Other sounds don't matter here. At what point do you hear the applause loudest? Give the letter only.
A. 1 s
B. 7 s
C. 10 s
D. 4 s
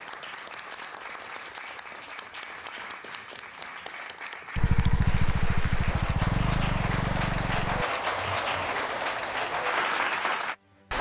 C.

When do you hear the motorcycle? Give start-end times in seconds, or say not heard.
4.5-7.8.